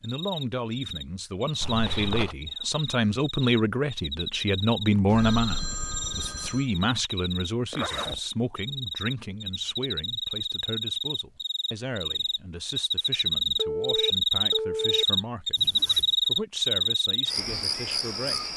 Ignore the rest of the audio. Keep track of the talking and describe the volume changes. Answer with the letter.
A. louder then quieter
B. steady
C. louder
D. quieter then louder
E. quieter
E.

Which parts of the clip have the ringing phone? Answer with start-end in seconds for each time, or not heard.
5.0-6.7, 13.6-15.1.